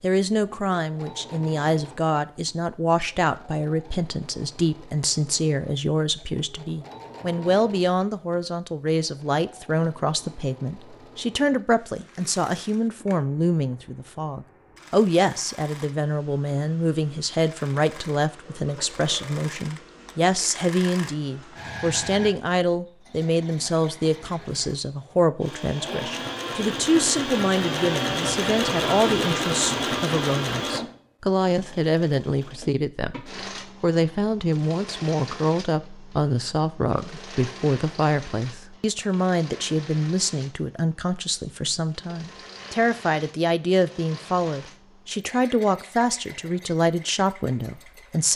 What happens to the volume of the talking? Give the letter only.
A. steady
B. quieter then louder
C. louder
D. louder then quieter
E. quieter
A.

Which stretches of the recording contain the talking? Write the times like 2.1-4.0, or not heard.
0.0-48.3.